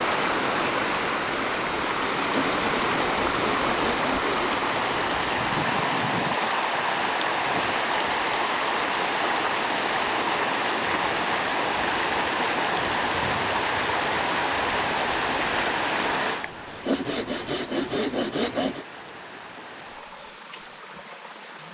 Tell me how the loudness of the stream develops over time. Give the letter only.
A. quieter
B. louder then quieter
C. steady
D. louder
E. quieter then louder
A.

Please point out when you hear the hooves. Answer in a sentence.
The hooves can't be heard in this clip.